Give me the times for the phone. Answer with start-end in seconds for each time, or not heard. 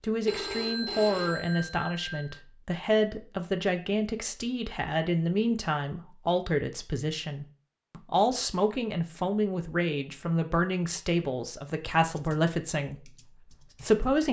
0.2-2.4.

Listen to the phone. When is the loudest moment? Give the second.
1 s.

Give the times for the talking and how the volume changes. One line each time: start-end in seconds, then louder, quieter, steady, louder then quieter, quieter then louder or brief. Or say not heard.
0.0-14.2 steady.